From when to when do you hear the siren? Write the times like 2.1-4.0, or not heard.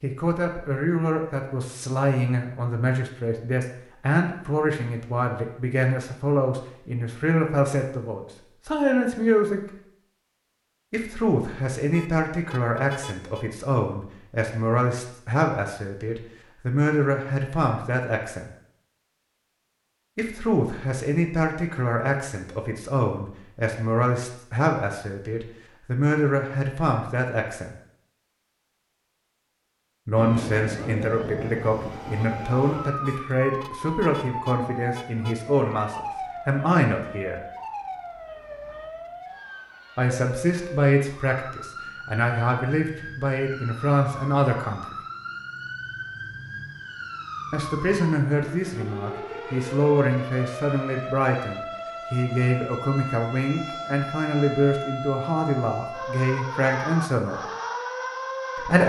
30.1-58.8.